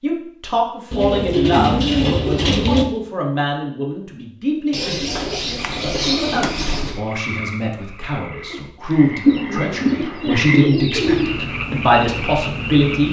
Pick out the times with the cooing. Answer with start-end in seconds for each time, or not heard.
0.9-2.9, 4.7-7.0, 9.2-11.3.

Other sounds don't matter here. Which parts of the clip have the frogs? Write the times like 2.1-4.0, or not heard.
5.5-13.0.